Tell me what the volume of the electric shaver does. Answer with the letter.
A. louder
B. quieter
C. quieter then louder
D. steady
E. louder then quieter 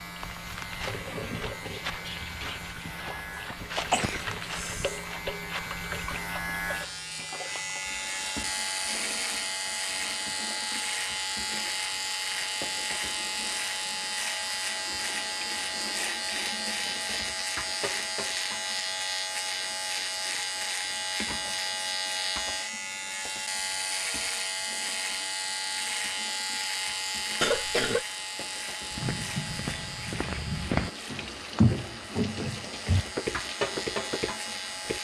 E.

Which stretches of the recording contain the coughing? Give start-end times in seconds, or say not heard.
3.8-5.0, 27.4-28.1.